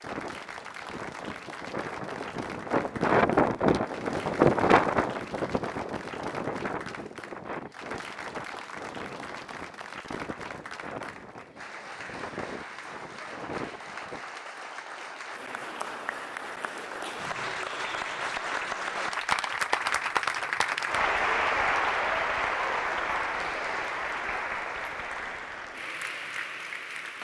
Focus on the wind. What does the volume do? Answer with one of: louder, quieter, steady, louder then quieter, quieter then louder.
louder then quieter.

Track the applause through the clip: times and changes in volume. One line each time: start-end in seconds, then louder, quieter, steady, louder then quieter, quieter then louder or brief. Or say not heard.
0.0-27.2 louder.